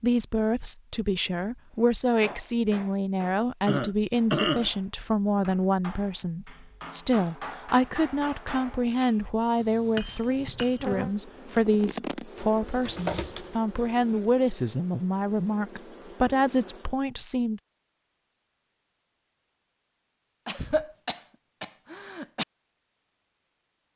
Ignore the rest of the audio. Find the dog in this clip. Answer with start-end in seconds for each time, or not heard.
not heard.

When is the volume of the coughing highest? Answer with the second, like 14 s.
4 s.